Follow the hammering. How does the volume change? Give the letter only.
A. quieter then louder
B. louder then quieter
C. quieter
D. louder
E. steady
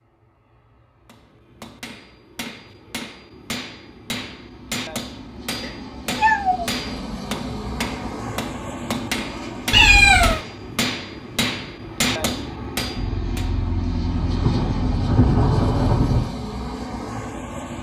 D.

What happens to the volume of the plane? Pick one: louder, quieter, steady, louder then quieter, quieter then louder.
louder.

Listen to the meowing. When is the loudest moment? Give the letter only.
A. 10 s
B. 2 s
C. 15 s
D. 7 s
A.